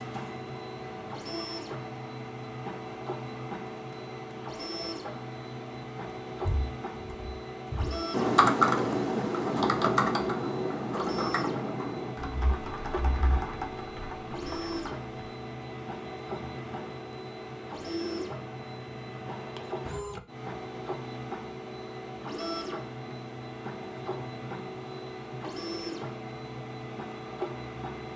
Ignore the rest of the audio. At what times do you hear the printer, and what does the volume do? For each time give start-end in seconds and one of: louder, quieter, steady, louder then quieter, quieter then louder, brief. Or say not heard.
0.0-28.1 steady.